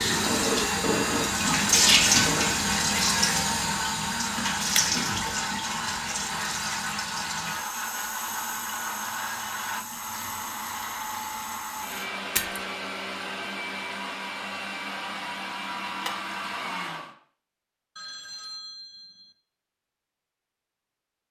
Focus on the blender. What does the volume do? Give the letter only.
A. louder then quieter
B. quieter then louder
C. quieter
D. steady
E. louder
D.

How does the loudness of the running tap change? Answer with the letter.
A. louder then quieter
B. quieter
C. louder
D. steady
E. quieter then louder
B.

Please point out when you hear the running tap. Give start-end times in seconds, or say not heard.
0.0-12.1.